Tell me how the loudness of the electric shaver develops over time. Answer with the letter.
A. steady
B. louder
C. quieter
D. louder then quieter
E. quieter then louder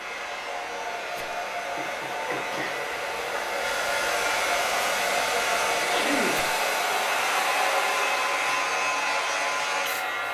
B.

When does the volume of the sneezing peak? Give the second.
6 s.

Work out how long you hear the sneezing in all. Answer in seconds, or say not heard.
2 s.